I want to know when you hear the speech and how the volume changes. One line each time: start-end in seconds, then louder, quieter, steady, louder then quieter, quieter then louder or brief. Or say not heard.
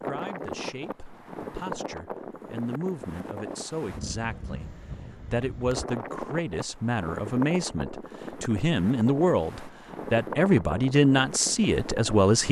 0.0-12.4 louder.